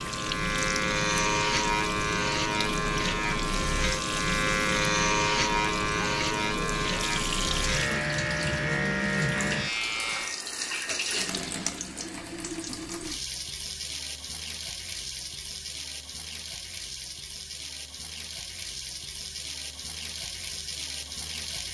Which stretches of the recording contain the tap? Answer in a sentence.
The tap can be heard from 0.0 to 21.6 s.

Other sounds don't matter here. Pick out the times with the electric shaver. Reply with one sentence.
You can hear the electric shaver from 0.0 to 10.4 s.